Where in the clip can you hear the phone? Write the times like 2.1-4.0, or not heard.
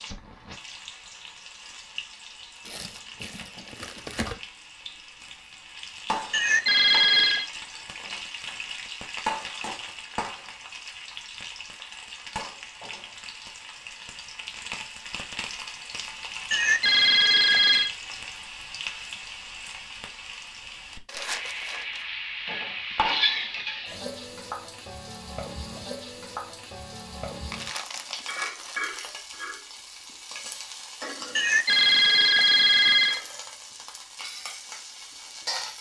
6.3-7.5, 16.5-17.9, 31.4-33.2.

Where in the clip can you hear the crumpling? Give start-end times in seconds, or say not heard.
2.6-4.4, 21.1-22.1, 27.5-28.8.